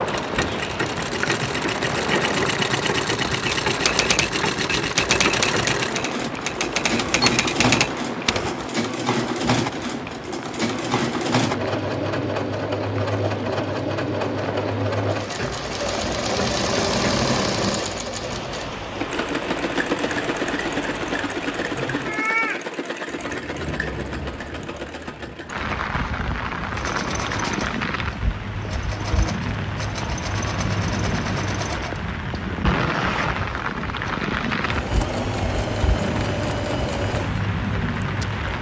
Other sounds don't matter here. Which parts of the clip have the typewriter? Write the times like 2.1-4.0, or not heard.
3.5-8.7.